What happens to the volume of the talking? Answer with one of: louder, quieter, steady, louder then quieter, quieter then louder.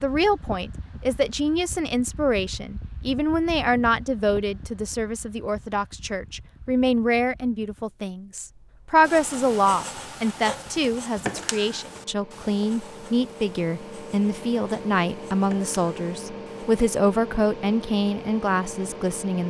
steady.